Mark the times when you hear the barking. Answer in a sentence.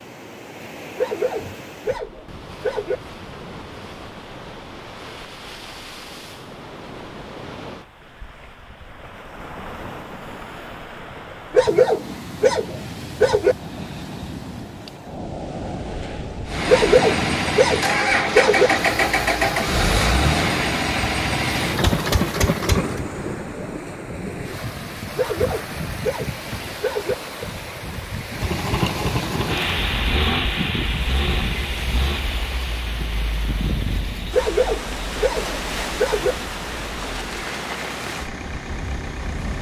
The barking can be heard from 0.9 to 3.0 s, from 11.5 to 13.6 s, from 16.6 to 18.7 s, from 25.1 to 27.1 s and from 34.3 to 36.4 s.